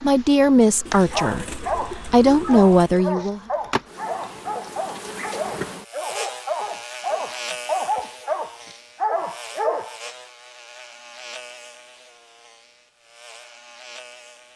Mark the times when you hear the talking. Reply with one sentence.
You can hear the talking from 0.0 to 3.4 s.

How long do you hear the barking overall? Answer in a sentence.
The barking can be heard for 9 seconds in total.